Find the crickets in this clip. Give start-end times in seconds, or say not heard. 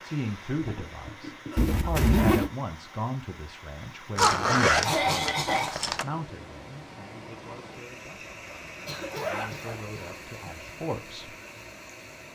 not heard.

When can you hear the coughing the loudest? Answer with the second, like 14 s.
5 s.